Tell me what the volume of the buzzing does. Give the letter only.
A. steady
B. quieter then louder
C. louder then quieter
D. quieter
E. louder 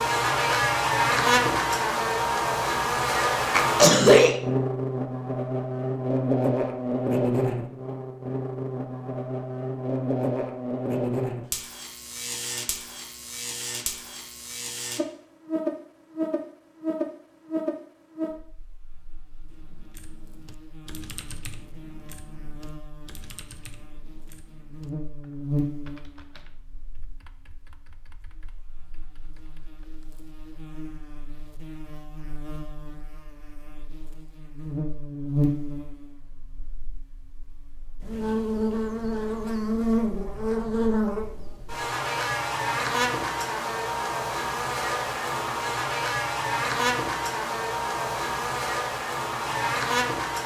B.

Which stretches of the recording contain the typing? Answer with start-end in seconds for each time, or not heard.
19.4-30.1.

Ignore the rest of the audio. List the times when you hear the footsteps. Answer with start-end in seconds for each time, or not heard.
not heard.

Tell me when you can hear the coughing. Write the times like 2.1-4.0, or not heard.
3.5-4.4.